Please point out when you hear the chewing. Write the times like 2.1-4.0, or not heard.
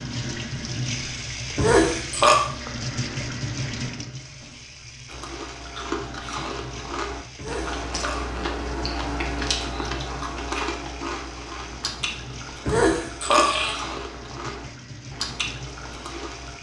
5.0-16.5.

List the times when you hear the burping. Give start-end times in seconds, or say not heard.
1.6-2.4, 7.3-8.2, 12.7-13.8.